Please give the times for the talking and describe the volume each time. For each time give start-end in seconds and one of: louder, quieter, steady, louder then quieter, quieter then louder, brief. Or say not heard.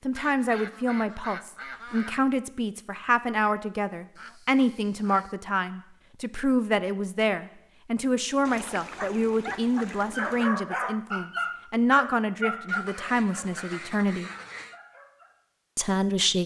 0.0-14.3 steady
15.8-16.4 brief.